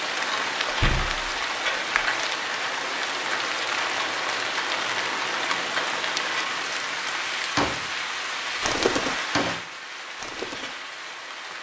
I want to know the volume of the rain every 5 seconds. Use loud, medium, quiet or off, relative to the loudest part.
loud, loud, medium.